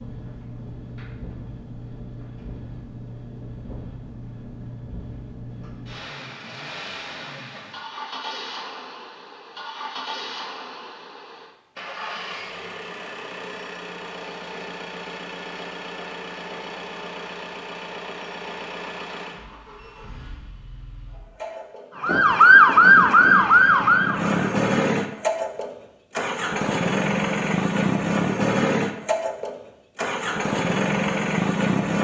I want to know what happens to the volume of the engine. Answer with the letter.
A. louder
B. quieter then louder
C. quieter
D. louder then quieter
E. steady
A.